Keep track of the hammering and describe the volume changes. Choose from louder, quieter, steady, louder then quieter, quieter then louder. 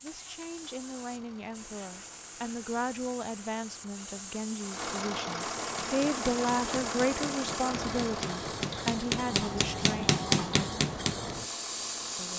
louder.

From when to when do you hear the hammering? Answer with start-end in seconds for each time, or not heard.
5.8-11.2.